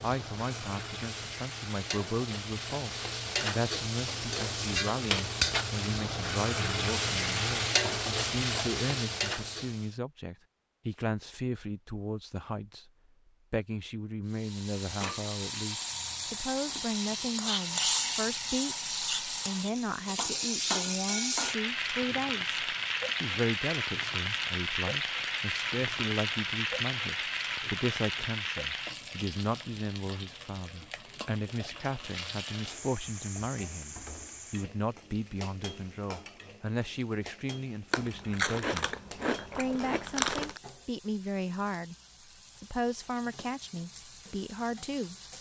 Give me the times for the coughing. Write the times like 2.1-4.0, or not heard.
not heard.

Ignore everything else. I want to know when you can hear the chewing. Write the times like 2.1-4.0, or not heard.
37.9-40.6.